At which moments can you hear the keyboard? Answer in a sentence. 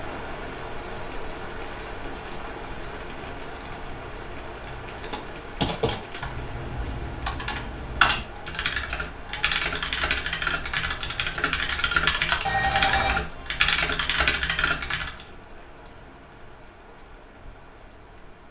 You can hear the keyboard from 5.0 to 15.2 s.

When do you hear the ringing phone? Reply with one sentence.
You can hear the ringing phone from 12.4 to 13.2 s.